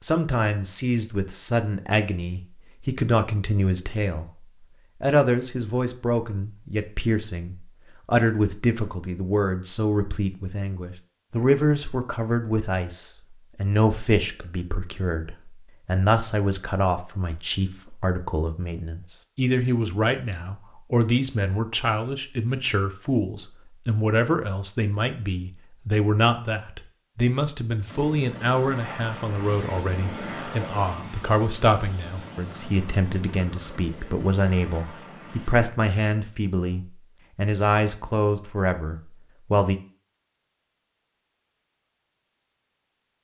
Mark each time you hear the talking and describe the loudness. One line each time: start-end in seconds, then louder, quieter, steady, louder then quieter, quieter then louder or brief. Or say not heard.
0.0-39.8 steady.